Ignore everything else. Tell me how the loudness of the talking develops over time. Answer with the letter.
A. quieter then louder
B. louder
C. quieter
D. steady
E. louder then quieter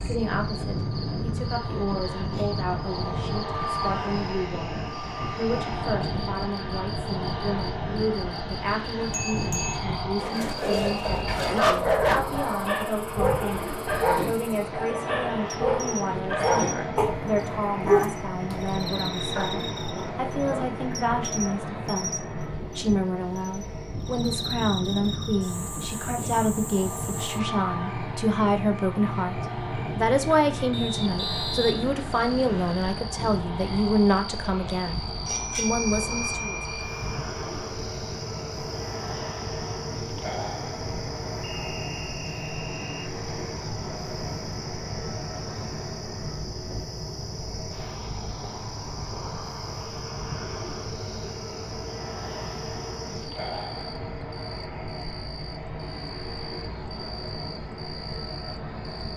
B.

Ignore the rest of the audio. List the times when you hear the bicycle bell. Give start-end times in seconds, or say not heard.
8.9-9.8, 35.2-37.0.